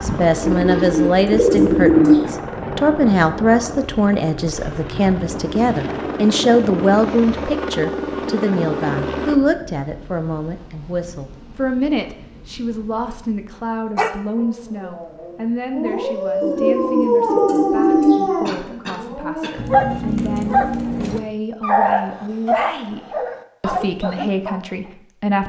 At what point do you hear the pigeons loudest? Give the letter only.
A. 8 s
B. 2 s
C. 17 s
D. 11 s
B.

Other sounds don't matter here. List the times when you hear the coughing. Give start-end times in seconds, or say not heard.
18.4-19.6.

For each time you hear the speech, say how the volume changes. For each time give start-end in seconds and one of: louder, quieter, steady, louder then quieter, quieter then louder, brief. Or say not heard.
0.0-25.4 quieter.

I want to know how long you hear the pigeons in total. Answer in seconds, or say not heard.
4 s.